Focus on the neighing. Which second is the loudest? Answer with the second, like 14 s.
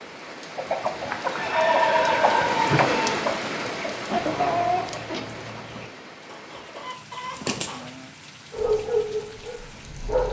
2 s.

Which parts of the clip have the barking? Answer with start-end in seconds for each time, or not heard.
8.5-10.2.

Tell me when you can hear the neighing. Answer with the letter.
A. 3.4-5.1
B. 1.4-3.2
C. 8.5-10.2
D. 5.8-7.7
B.